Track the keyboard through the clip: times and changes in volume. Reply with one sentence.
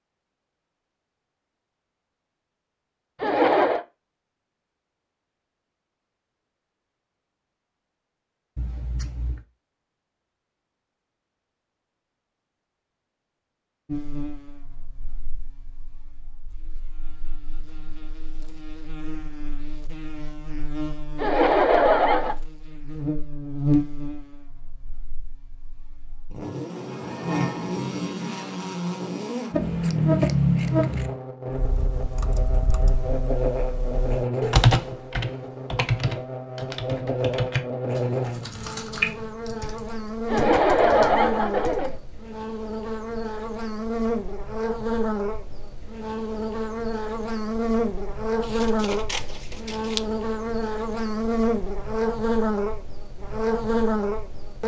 You can hear the keyboard from 31.5 to 42.0 s, getting louder then quieter.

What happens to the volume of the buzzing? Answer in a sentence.
The volume of the buzzing goes up.